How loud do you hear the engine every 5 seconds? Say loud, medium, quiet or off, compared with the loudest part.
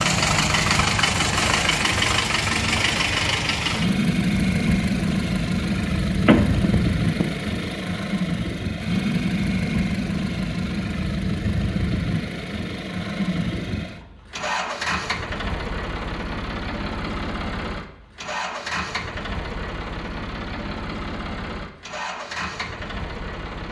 loud, loud, medium, medium, medium.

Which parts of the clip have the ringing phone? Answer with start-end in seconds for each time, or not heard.
6.2-7.2.